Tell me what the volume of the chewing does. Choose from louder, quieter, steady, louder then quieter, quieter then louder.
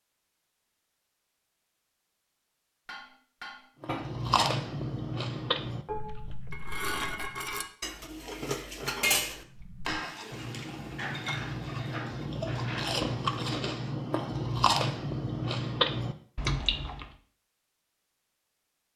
quieter then louder.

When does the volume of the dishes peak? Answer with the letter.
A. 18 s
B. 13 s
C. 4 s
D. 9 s
D.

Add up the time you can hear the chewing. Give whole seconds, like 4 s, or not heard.
12 s.